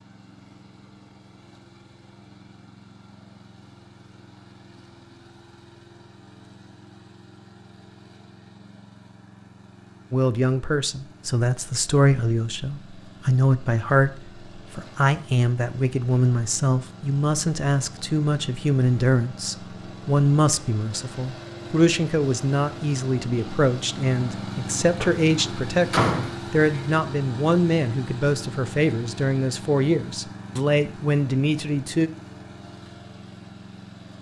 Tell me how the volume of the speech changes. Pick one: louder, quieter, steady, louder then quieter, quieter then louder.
steady.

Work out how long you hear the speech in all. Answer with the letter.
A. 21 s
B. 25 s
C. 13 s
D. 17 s
A.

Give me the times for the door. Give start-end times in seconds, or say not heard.
25.0-26.8.